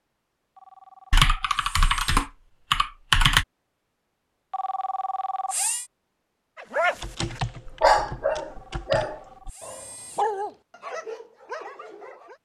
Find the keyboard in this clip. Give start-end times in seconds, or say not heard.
1.1-3.5, 7.0-9.1.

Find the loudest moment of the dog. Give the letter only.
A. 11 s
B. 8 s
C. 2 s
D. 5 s
B.